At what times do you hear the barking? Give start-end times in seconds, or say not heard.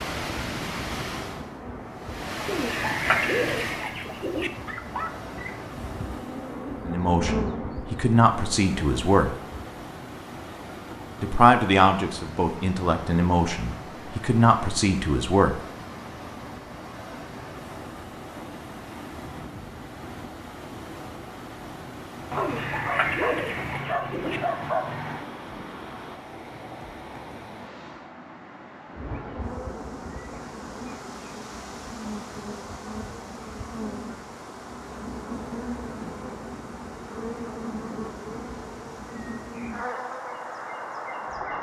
4.5-5.7, 22.3-25.2.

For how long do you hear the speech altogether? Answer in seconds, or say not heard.
7 s.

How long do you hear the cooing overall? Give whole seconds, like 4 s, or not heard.
4 s.